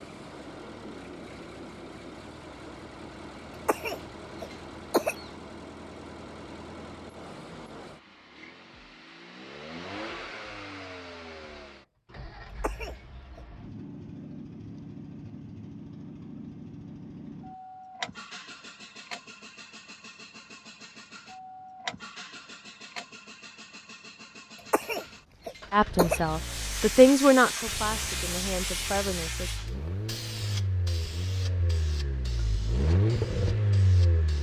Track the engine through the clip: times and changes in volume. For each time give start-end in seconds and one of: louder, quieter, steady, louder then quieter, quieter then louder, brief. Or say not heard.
0.0-34.3 louder.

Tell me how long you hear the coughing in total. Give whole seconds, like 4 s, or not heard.
4 s.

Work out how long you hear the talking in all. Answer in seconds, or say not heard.
4 s.